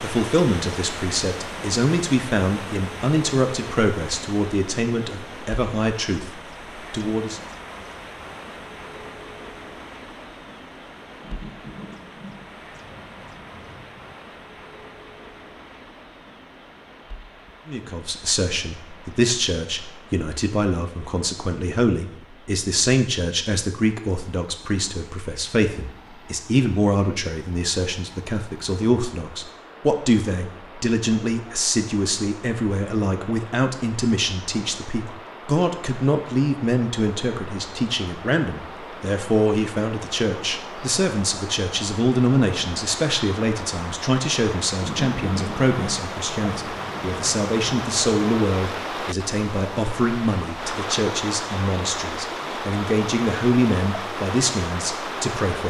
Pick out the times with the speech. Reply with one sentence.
The speech can be heard from 0.0 to 7.4 s and from 17.6 to 55.6 s.